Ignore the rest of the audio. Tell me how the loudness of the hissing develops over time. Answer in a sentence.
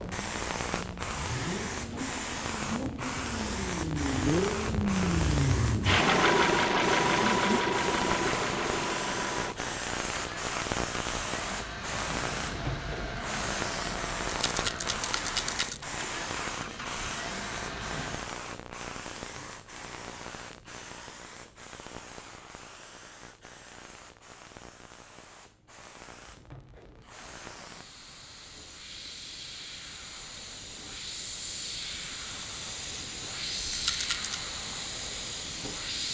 The volume of the hissing goes down, then up.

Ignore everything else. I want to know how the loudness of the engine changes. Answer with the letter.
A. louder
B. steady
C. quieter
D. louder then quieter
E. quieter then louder
D.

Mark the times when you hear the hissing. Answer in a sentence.
The hissing can be heard from 0.0 to 36.0 s.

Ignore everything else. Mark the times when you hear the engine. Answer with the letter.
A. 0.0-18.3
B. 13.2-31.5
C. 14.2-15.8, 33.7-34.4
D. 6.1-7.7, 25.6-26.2
A.